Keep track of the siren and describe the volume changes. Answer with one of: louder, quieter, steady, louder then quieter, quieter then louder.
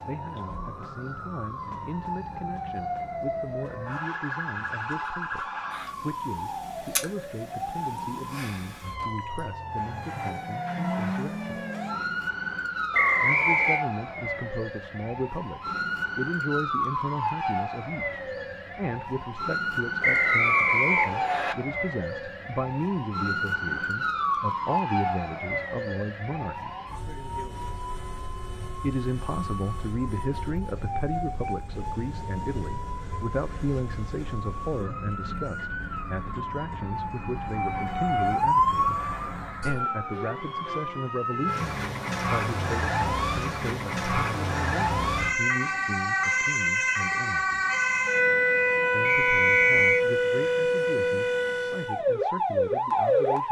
louder.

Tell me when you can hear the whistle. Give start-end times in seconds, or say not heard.
12.9-13.8, 20.0-21.6, 49.0-50.0.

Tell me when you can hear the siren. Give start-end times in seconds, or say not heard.
0.0-53.4.